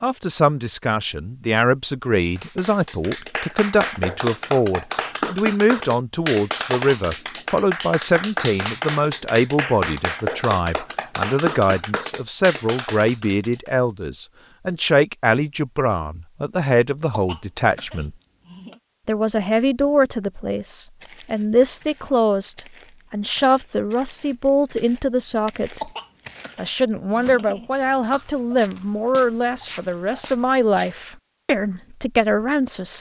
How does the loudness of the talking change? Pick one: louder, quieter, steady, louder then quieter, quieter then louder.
steady.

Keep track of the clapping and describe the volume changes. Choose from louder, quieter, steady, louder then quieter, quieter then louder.
steady.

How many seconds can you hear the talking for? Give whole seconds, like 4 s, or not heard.
31 s.